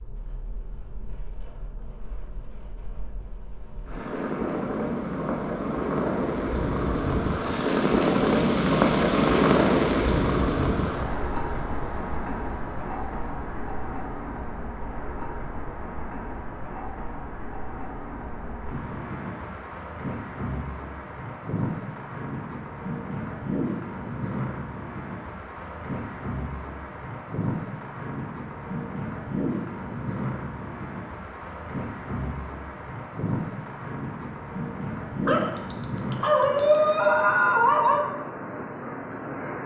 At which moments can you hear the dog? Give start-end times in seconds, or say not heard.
35.2-38.0.